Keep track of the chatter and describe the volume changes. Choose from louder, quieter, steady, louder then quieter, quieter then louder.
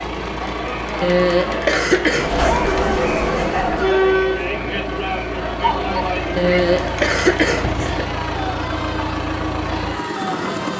louder then quieter.